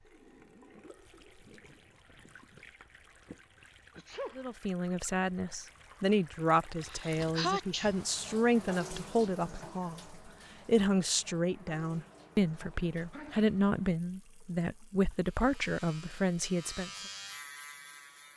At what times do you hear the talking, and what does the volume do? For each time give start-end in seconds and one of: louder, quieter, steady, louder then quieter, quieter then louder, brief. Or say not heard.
4.3-16.9 steady.